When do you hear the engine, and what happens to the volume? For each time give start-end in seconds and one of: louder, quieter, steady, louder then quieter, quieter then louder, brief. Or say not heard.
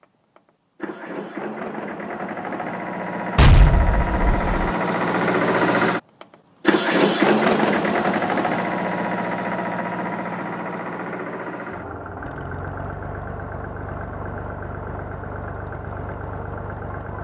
0.0-17.2 louder then quieter.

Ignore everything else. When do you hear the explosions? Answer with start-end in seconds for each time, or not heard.
3.4-4.5.